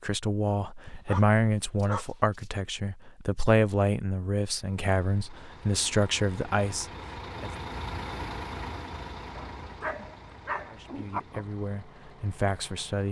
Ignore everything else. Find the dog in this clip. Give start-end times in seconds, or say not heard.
0.8-2.5, 9.3-11.2.